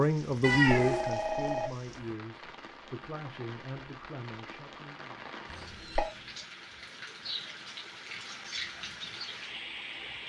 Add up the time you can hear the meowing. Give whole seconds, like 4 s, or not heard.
2 s.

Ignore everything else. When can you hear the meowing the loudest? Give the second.
1 s.